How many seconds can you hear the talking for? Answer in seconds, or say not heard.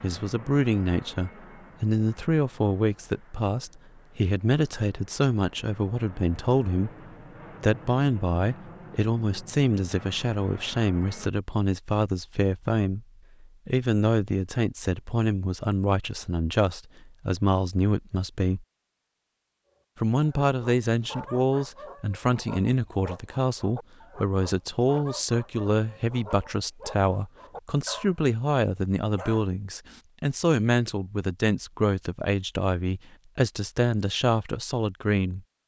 33 s.